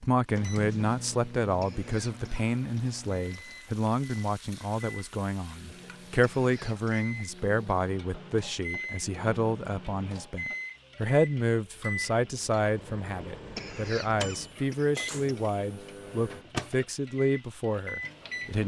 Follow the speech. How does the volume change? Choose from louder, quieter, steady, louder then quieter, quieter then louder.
steady.